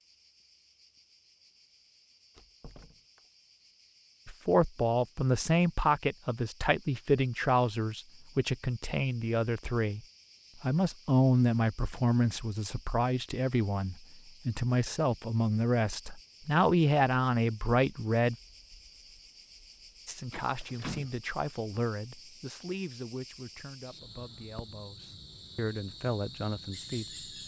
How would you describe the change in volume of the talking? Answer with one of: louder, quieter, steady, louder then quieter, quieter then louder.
quieter.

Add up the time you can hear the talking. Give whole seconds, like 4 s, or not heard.
21 s.